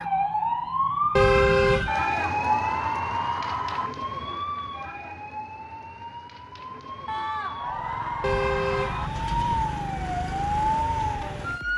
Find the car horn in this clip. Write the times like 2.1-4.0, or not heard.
1.1-1.9, 8.2-9.7.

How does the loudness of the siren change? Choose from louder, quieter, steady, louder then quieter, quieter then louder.
quieter then louder.